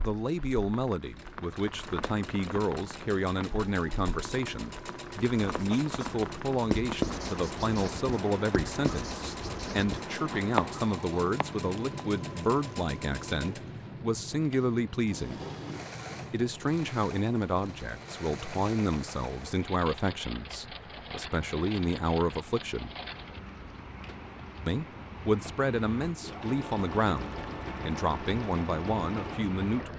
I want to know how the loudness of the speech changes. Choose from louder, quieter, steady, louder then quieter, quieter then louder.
steady.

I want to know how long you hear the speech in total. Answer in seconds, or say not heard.
27 s.